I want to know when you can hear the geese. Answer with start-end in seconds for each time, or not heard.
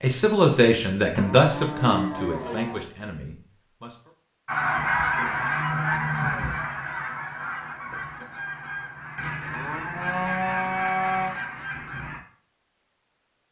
4.5-12.2.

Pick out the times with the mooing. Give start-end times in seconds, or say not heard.
1.1-2.9, 5.3-6.7, 9.5-11.4.